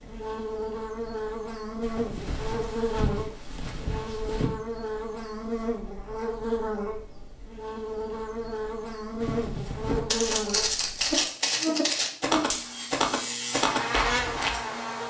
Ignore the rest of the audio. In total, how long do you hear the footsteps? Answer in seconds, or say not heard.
8 s.